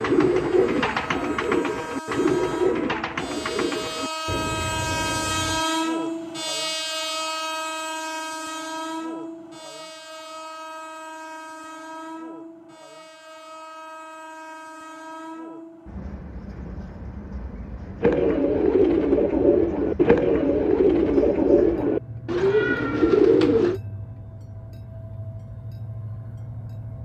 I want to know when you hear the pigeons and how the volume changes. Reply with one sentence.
The pigeons can be heard from 0.0 to 5.7 s, getting quieter; and from 18.0 to 23.8 s, at a steady volume.